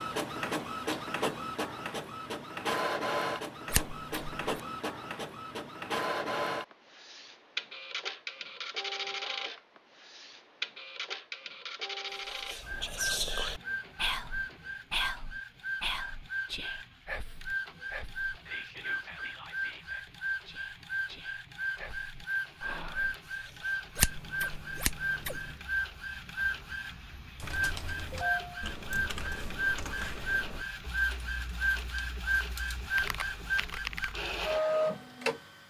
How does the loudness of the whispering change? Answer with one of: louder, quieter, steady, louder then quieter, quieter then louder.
quieter.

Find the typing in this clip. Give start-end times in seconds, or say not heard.
27.4-34.1.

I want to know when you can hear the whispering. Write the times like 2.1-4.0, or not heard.
12.2-24.0.